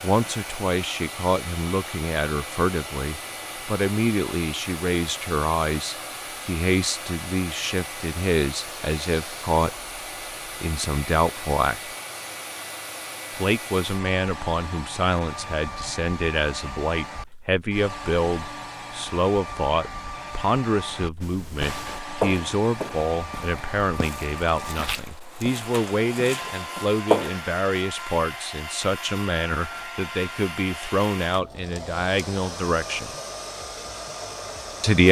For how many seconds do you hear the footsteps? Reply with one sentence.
The footsteps can be heard for 6 seconds in total.